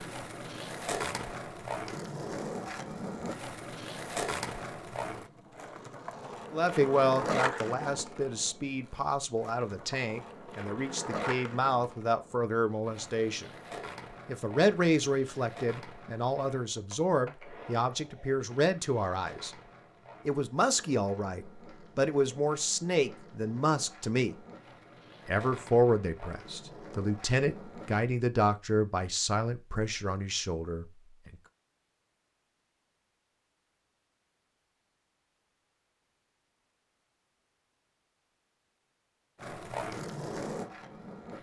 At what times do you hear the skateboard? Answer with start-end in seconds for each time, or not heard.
0.0-28.1, 39.4-41.3.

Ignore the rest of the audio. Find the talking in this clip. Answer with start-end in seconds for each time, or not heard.
6.5-13.5, 14.2-19.5, 20.2-24.4, 25.2-31.4.